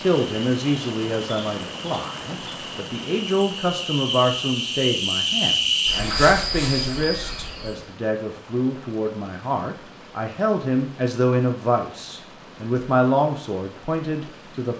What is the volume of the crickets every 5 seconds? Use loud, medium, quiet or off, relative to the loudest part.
medium, loud, off.